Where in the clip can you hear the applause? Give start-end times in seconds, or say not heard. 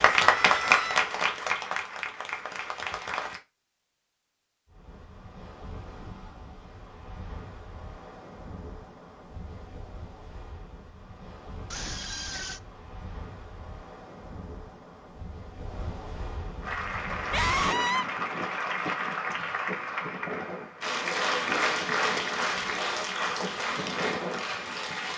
0.0-3.4, 16.6-25.1.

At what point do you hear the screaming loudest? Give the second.
18 s.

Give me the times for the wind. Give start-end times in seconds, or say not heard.
4.7-25.1.